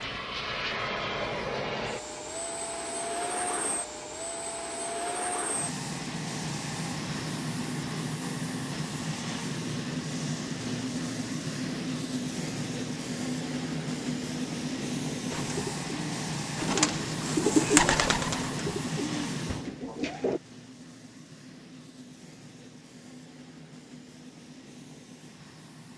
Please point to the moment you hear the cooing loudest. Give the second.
18 s.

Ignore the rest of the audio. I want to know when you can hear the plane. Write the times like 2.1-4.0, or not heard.
0.0-25.9.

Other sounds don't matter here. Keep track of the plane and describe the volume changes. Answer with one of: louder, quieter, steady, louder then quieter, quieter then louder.
quieter.